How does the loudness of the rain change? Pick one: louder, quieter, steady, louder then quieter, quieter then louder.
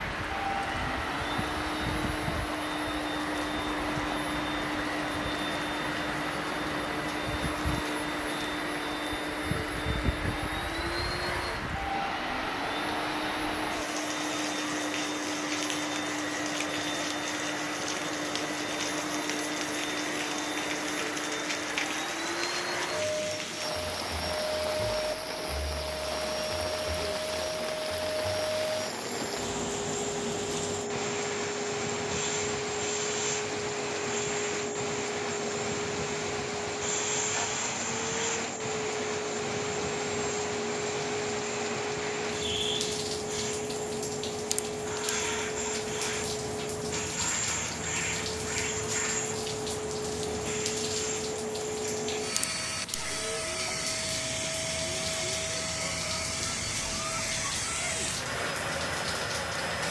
steady.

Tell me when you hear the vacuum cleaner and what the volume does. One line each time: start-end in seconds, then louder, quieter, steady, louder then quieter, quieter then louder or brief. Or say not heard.
0.0-59.8 steady.